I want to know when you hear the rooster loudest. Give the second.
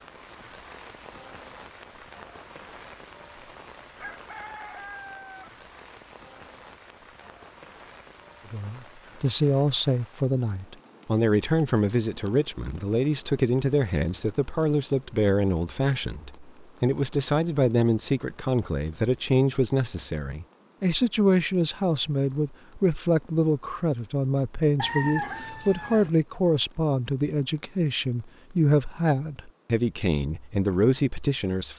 25 s.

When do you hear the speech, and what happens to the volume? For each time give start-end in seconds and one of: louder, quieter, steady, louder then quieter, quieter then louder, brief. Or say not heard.
8.5-31.7 steady.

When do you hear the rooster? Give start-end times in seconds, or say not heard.
4.0-5.5, 24.8-26.1.